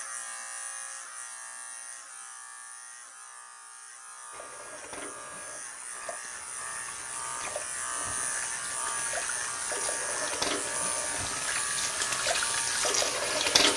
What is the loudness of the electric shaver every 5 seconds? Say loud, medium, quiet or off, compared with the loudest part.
medium, loud, loud.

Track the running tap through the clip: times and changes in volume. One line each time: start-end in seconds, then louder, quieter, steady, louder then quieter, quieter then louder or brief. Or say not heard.
4.3-13.7 louder.